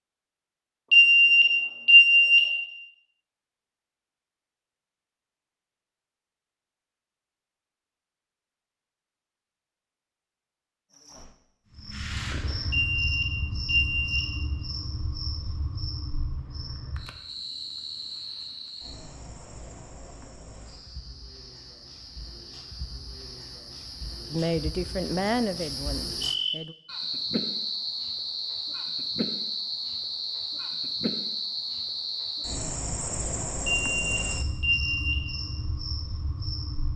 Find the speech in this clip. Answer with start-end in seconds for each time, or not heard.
24.3-26.8.